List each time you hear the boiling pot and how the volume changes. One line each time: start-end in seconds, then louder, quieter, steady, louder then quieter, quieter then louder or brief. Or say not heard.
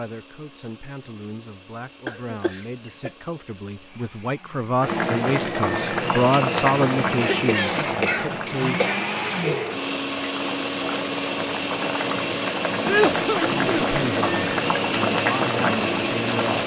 4.8-16.6 quieter then louder.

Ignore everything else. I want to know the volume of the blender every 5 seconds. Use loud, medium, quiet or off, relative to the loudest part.
quiet, loud, loud, loud.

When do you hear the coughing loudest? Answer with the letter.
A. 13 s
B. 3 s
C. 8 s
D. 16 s
A.